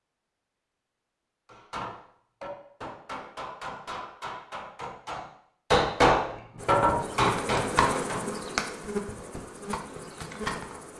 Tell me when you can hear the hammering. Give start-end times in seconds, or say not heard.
1.4-8.2.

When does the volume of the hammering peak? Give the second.
6 s.